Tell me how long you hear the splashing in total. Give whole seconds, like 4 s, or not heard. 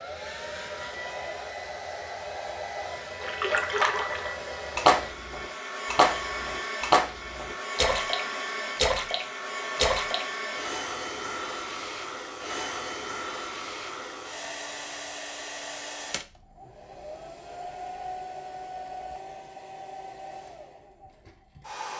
7 s.